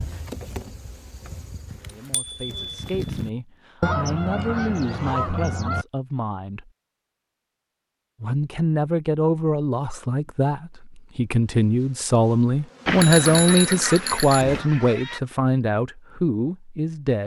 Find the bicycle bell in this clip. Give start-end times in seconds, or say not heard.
1.7-3.3, 12.8-14.7.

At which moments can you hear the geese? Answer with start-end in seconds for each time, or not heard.
3.8-5.8, 13.3-15.2.